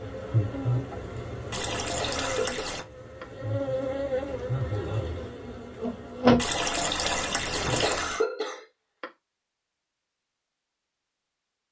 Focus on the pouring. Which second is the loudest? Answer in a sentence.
The volume of the pouring peaks at 7 seconds.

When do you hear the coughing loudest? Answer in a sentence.
The loudest moment of the coughing is at 8 seconds.